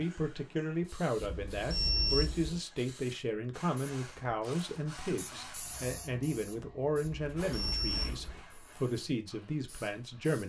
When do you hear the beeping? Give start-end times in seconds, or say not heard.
1.2-2.6, 7.0-8.4.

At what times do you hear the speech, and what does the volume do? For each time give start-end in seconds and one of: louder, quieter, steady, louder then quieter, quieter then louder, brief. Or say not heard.
0.0-10.4 steady.